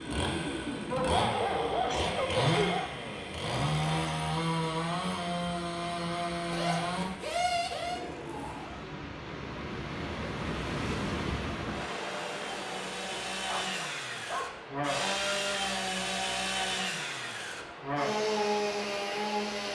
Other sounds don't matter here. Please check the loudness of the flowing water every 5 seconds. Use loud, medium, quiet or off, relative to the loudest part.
medium, medium, loud, medium.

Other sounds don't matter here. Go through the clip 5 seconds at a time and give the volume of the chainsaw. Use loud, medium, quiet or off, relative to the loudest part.
loud, loud, medium, loud.